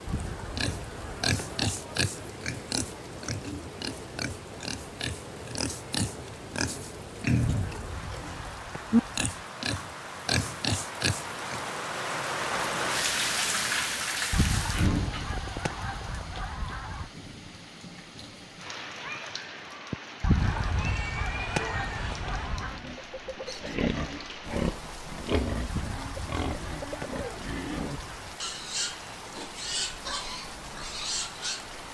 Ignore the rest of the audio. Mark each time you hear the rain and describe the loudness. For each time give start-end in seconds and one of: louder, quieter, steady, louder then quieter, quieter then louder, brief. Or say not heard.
0.0-31.8 louder then quieter.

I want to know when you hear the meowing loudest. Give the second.
21 s.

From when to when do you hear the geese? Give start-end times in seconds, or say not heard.
0.1-1.8, 7.4-9.2, 14.3-17.1, 20.2-22.8, 25.6-28.4.